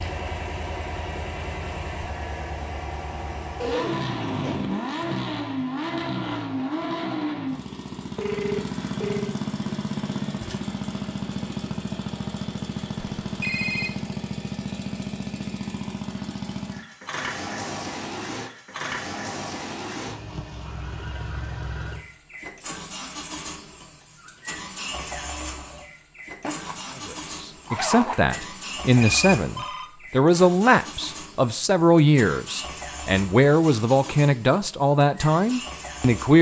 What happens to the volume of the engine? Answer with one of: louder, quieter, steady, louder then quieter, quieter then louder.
quieter.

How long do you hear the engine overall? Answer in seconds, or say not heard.
36 s.